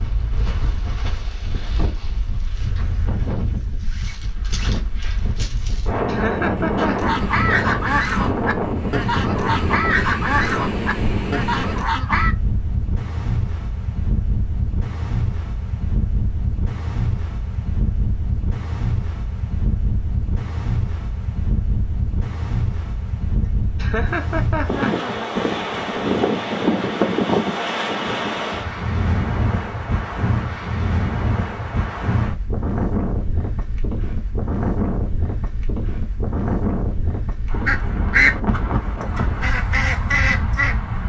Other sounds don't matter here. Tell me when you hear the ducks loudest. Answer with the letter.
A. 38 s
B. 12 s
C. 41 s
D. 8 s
A.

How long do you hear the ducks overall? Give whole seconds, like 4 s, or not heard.
9 s.